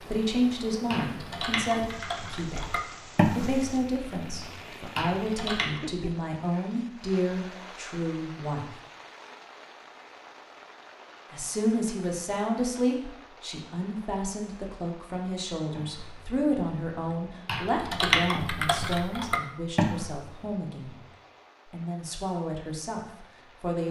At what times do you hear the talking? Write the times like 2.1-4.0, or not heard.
0.1-8.8, 11.3-21.0, 21.7-23.8.